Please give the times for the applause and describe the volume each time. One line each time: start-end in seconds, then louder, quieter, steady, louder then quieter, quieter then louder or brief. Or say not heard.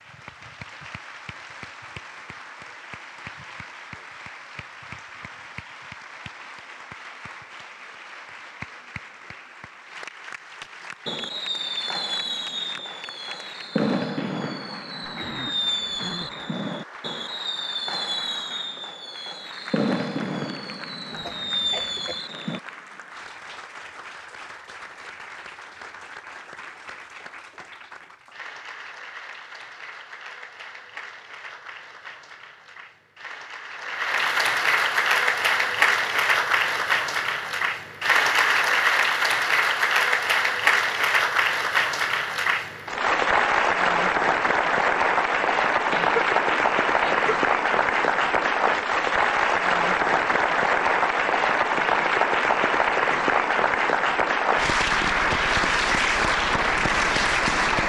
0.0-57.8 louder.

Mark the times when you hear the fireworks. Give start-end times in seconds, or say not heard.
11.1-22.6.